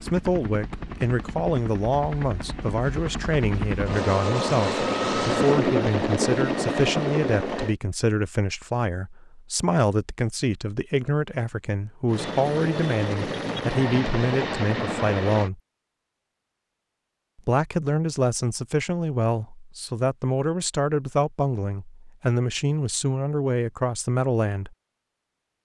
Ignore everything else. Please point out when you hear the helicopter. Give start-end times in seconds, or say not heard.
0.0-7.8, 12.1-15.5.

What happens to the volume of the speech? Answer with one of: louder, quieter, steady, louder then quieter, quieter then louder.
steady.